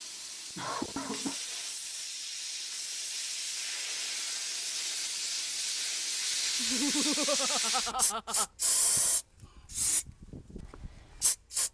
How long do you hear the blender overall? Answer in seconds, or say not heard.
not heard.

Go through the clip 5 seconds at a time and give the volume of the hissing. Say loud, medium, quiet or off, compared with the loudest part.
medium, loud, medium.